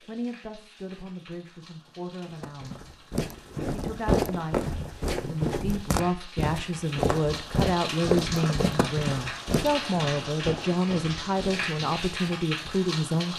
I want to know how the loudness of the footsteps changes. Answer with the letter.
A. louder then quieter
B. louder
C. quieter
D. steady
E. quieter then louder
C.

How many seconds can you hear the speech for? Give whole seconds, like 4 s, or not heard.
12 s.